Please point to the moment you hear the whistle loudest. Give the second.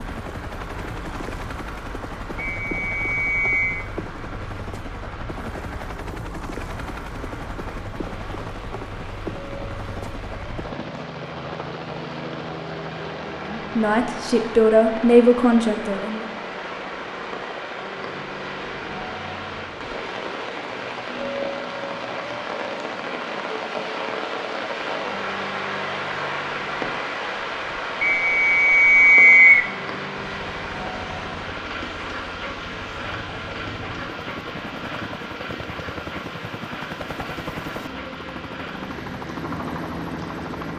29 s.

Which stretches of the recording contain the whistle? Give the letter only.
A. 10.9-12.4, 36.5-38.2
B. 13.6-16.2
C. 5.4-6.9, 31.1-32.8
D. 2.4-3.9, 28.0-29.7
D.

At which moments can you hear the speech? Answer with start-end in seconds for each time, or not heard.
13.6-16.2.